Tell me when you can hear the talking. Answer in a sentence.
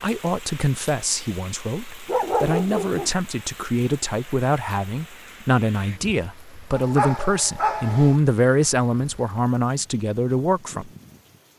The talking can be heard from 0.0 to 10.9 s.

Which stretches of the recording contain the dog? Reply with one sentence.
The dog can be heard from 2.0 to 3.1 s and from 6.8 to 8.2 s.